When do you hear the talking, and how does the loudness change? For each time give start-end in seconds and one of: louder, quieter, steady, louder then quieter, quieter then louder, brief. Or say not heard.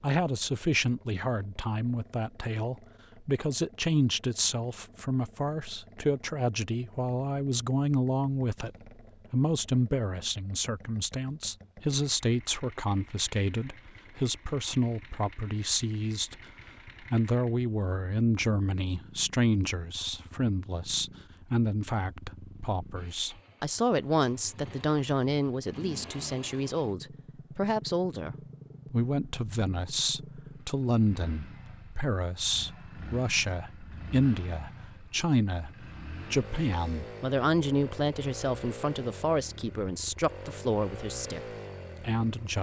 0.0-16.4 steady
17.0-42.5 steady.